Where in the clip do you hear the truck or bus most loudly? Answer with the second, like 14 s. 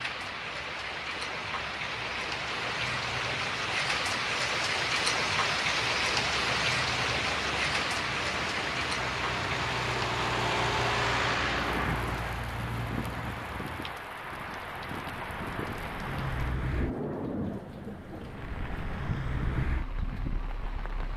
11 s.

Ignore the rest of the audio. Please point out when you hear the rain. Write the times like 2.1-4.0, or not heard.
0.0-21.1.